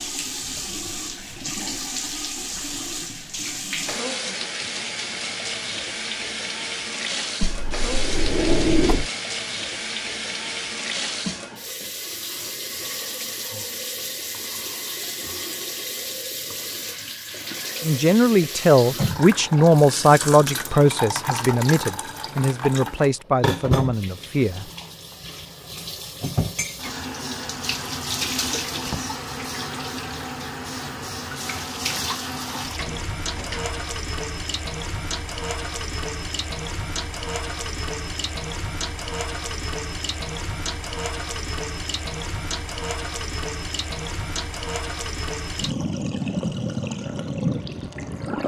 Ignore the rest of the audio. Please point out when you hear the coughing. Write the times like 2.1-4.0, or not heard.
not heard.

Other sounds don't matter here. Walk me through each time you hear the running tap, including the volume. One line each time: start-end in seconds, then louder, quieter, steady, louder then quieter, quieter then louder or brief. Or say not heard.
0.0-48.4 steady.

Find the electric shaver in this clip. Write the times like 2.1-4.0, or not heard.
not heard.